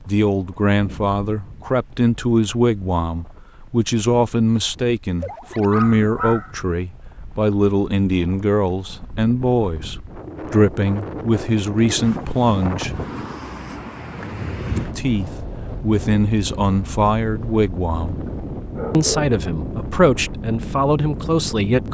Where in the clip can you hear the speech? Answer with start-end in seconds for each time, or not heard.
0.1-13.4, 14.7-18.2, 18.9-21.9.